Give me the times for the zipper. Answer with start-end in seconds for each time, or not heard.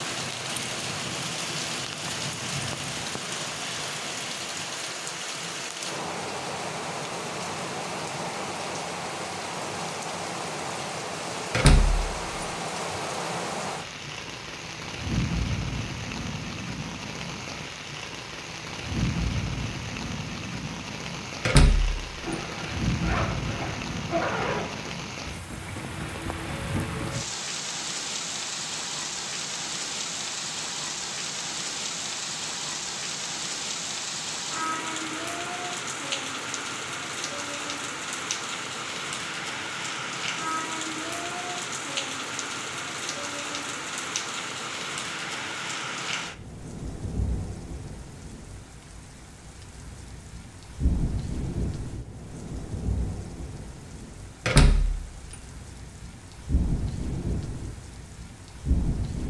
22.2-24.9.